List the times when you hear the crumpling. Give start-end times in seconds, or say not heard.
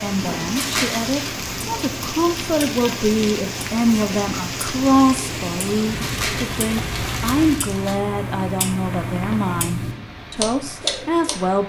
0.6-1.1, 6.0-8.0.